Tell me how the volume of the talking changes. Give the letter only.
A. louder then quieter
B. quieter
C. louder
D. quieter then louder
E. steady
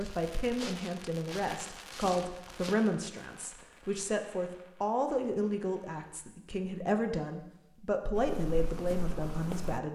E.